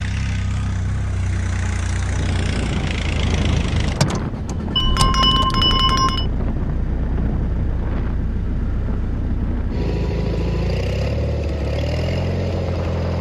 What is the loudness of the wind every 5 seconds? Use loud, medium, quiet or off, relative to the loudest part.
loud, loud, medium.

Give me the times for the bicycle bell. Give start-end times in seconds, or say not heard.
4.8-6.2.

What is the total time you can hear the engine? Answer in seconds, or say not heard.
13 s.